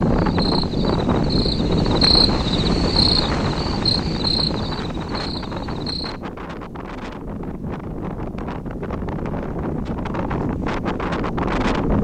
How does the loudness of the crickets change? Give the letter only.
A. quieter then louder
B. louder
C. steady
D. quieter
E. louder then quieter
E.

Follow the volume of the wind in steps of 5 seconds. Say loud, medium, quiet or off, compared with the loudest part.
loud, medium, loud.